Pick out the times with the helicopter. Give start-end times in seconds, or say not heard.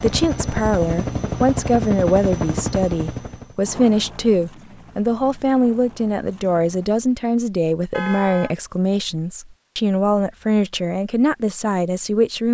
0.0-7.2.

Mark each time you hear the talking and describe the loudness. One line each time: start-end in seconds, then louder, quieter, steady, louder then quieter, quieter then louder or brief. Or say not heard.
0.0-12.4 steady.